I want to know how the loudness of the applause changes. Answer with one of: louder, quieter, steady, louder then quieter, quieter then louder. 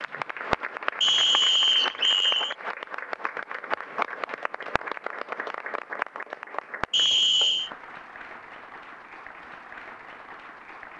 quieter.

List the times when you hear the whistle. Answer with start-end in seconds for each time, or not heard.
1.0-2.5, 6.9-7.7.